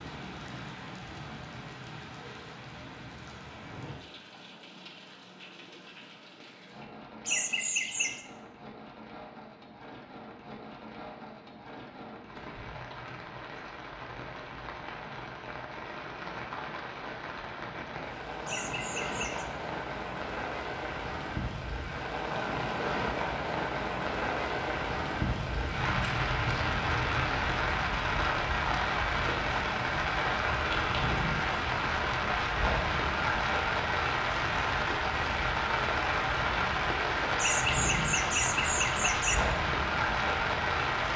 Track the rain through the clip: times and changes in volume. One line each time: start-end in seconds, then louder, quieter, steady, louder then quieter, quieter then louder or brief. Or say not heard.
0.0-41.1 louder.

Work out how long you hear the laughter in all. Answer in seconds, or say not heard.
4 s.